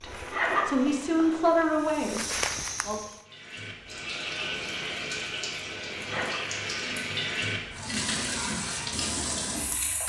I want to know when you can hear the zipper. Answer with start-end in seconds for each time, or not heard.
0.1-1.4, 6.0-6.4.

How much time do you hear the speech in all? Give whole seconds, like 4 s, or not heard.
3 s.